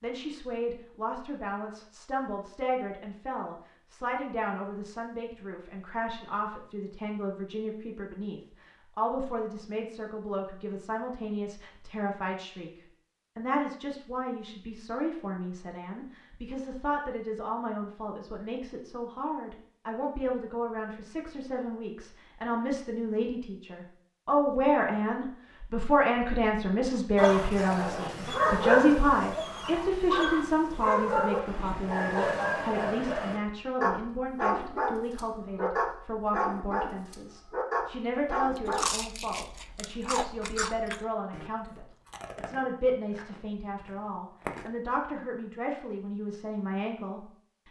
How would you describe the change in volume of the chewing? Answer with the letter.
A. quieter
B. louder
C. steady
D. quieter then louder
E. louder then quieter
A.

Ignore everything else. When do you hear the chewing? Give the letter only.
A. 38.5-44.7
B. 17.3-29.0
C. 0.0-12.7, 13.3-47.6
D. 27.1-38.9
A.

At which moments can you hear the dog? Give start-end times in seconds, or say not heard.
27.1-38.9.